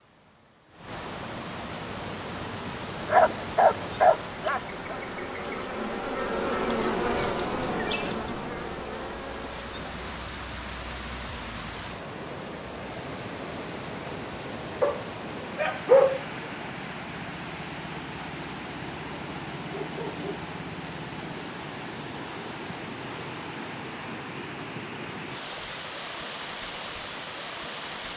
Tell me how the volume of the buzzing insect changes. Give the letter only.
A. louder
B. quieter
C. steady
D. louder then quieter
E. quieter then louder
D.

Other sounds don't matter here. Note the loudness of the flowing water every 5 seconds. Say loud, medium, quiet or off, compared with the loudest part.
loud, medium, loud, loud, loud, loud.